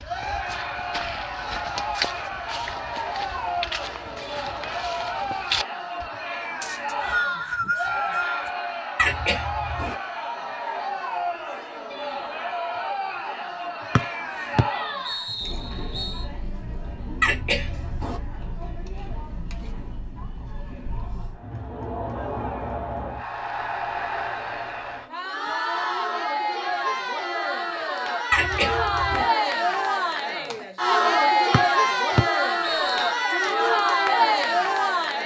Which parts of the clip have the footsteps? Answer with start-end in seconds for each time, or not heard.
0.0-6.1.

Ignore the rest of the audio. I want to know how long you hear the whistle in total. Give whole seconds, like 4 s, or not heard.
6 s.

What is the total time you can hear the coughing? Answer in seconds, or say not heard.
3 s.